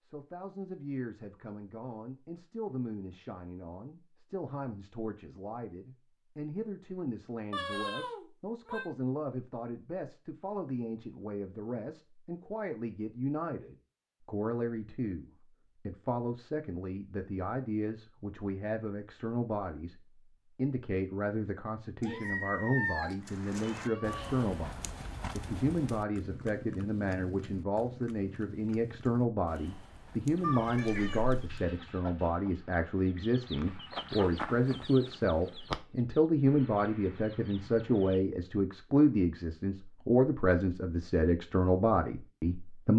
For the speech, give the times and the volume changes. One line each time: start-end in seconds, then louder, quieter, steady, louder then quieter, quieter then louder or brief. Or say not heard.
0.0-42.9 louder.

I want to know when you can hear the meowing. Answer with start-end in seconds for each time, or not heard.
7.5-8.9, 22.0-24.4, 30.4-31.6.